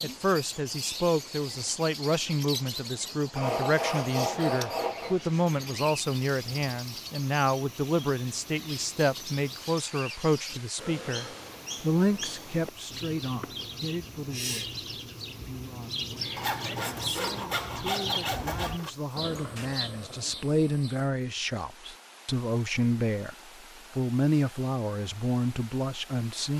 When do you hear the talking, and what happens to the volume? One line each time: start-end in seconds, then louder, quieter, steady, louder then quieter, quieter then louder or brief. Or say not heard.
0.0-23.4 quieter then louder
23.9-26.5 brief.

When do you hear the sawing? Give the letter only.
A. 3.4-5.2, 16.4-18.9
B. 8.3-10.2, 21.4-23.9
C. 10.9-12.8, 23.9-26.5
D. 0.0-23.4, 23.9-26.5
A.